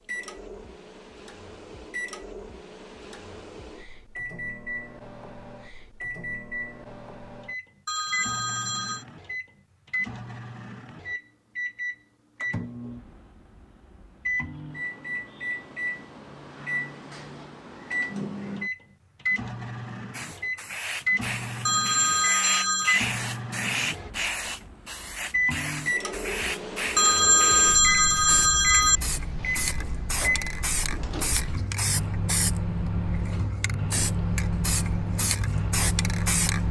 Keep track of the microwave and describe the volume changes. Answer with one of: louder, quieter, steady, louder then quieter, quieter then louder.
louder.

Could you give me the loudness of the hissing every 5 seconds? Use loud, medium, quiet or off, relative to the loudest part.
off, off, off, off, loud, loud, loud, loud.